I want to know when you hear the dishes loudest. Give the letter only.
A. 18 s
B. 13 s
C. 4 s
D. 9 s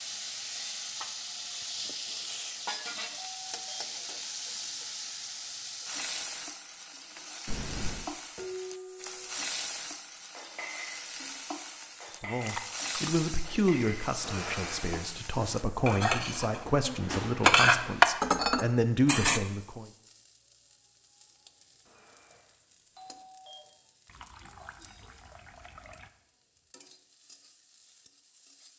A.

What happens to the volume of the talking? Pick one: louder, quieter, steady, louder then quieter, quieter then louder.
quieter then louder.